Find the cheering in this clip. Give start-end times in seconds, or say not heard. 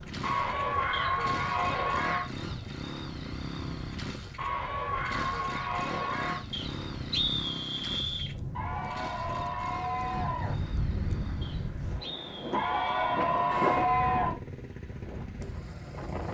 0.2-2.3, 4.3-6.5, 8.6-10.6, 12.5-14.3.